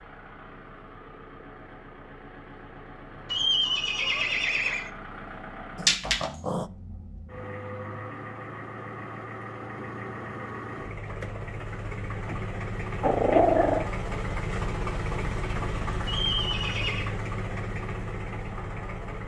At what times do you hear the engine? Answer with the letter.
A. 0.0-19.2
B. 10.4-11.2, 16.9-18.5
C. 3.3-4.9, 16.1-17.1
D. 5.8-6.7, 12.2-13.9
A.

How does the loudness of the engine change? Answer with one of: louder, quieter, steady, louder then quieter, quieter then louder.
louder.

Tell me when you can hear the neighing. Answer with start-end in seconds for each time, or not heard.
3.3-4.9, 16.1-17.1.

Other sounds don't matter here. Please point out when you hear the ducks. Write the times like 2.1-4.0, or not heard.
not heard.